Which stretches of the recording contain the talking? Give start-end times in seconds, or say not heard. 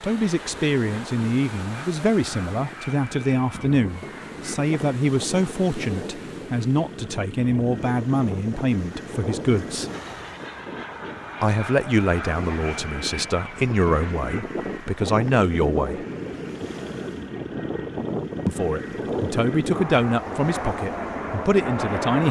0.0-9.9, 11.4-16.1, 18.4-22.2.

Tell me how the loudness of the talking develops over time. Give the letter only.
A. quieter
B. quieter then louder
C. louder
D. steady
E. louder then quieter
D.